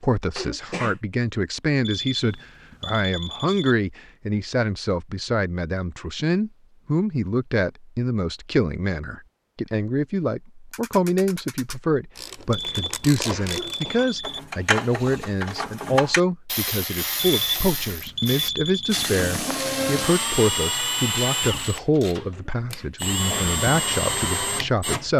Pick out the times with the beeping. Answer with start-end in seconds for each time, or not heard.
1.8-3.8, 12.5-14.4, 17.1-19.1.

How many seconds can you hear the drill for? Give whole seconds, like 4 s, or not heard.
6 s.